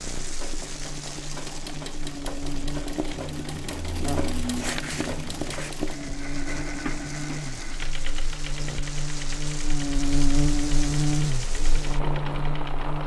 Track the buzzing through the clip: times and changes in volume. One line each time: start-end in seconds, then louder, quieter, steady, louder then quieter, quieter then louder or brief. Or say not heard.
0.1-13.0 louder.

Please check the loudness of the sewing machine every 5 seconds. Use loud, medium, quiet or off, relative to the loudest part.
loud, loud, medium.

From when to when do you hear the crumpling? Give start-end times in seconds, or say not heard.
4.4-5.8.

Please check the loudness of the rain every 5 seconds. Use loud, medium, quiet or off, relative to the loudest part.
medium, medium, loud.